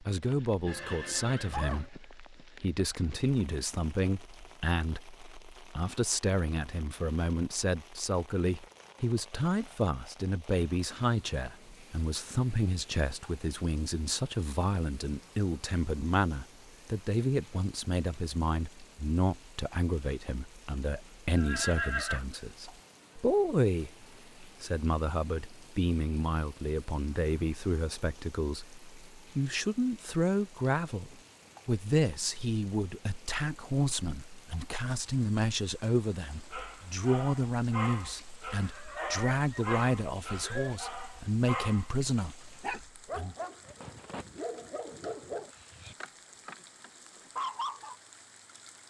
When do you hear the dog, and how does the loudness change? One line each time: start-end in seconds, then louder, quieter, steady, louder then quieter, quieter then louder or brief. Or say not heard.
36.5-48.0 steady.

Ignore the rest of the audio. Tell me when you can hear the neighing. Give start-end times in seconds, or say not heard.
0.7-1.9, 21.4-22.2, 38.5-40.8.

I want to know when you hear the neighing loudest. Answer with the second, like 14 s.
22 s.